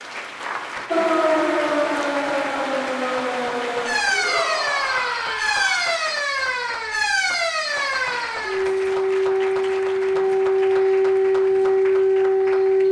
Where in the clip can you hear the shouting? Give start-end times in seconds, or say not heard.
4.1-6.0.